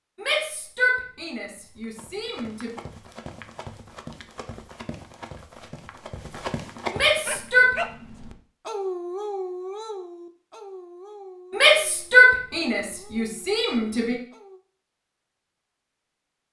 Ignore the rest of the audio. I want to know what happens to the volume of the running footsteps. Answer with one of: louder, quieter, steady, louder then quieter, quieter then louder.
louder.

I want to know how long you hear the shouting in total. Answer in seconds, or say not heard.
6 s.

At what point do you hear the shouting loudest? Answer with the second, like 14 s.
12 s.